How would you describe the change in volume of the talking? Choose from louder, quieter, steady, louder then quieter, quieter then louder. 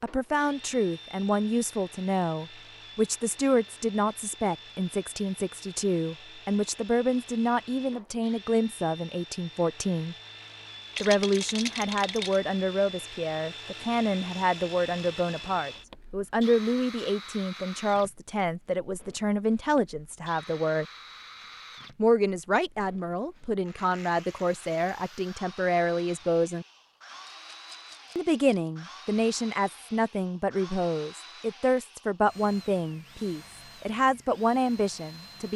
steady.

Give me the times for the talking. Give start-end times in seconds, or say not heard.
0.0-10.2, 11.0-20.9, 21.9-26.6, 28.1-35.5.